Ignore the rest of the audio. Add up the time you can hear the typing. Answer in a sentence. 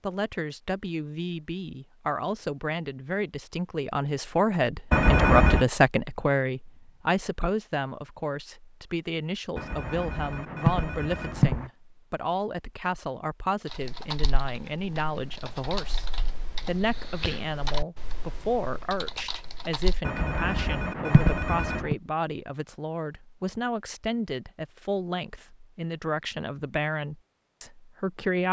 You can hear the typing for 6 seconds altogether.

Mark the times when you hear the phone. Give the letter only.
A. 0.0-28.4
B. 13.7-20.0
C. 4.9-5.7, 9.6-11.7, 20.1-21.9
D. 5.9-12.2
C.